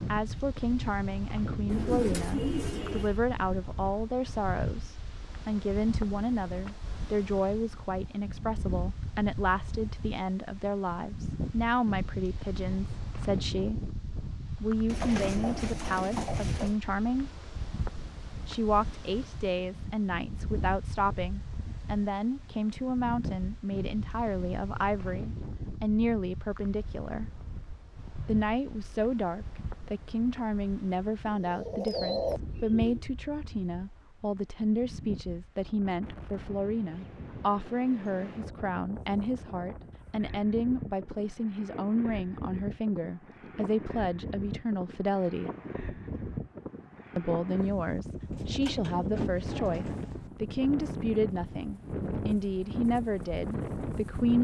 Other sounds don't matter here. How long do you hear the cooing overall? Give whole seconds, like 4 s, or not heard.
7 s.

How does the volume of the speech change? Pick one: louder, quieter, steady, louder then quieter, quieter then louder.
steady.